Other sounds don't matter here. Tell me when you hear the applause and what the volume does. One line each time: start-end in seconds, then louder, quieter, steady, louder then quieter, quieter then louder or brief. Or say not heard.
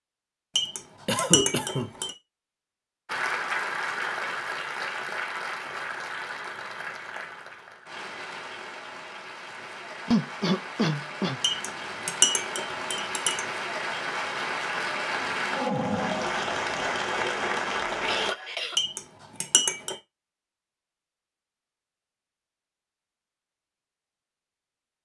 3.0-18.4 quieter then louder.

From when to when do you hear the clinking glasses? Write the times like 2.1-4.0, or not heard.
0.6-2.1, 11.4-13.4, 18.8-19.9.